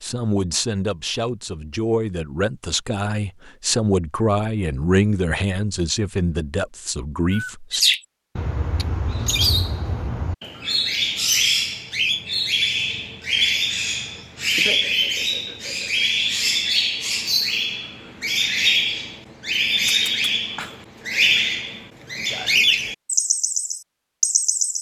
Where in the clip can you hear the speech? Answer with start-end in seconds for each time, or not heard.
0.0-7.8.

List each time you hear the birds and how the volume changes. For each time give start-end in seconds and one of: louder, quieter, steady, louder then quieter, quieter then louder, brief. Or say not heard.
7.3-24.7 steady.